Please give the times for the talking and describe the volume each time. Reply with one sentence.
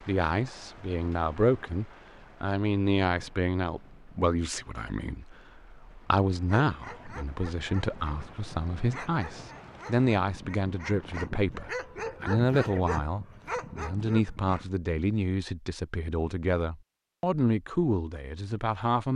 You can hear the talking from 0.0 to 19.1 s, at a steady volume.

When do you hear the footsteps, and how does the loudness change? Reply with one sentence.
The footsteps can't be heard in this clip.